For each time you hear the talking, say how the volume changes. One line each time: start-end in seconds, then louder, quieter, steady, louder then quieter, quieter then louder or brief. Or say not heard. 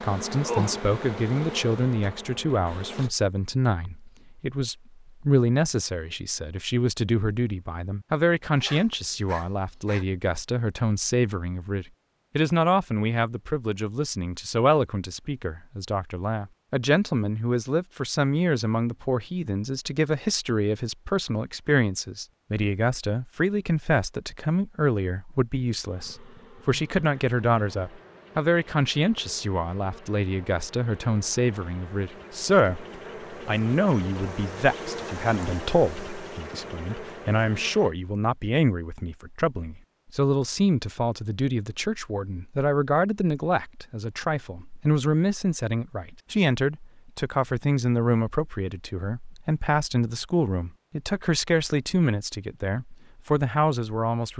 0.0-54.3 steady.